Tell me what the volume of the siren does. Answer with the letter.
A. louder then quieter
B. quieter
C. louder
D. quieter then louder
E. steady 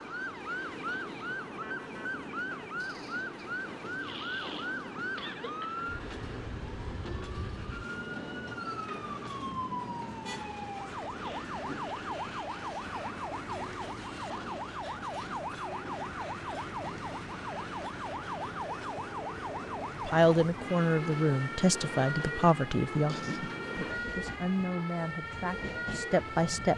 E.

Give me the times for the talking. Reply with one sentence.
The talking can be heard from 20.0 to 26.7 s.